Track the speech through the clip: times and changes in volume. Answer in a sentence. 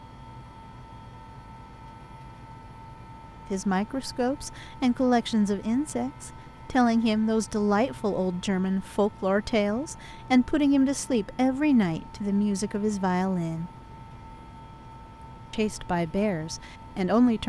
You can hear the speech from 3.5 to 13.7 s, at a steady volume; and briefly from 15.5 to 17.4 s.